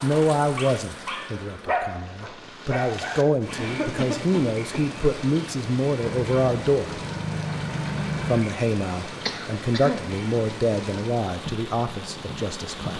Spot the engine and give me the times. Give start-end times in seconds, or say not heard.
6.0-8.4.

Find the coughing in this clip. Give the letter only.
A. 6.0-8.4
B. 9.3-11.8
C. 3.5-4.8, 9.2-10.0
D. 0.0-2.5
C.